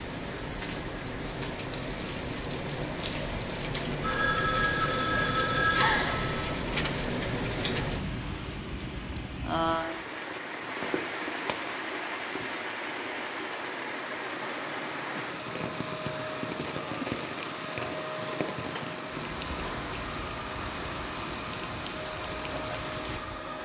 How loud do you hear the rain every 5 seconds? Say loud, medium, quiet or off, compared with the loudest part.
loud, loud, loud, medium, medium.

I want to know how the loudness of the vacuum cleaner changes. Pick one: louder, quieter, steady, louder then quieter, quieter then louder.
steady.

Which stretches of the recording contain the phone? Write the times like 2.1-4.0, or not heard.
4.0-6.5.